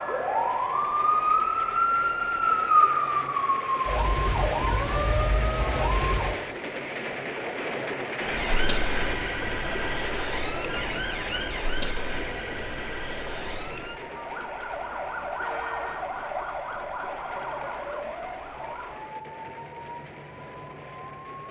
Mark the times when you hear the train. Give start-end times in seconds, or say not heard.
0.0-21.4.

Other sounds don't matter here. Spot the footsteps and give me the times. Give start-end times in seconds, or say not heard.
not heard.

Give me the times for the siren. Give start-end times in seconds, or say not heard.
0.0-6.4, 8.2-21.4.